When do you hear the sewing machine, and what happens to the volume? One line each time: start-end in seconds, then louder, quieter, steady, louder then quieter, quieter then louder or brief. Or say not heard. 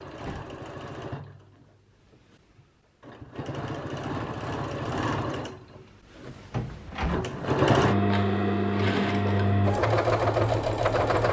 0.0-11.2 louder.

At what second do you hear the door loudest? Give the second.
7 s.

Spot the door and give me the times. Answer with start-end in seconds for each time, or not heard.
0.1-0.6, 6.5-7.3.